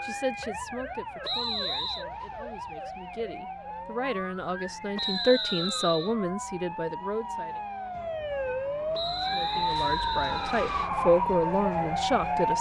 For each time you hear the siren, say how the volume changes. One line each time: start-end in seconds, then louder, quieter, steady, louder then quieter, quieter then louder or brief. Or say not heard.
0.0-12.5 louder.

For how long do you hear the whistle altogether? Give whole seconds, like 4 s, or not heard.
4 s.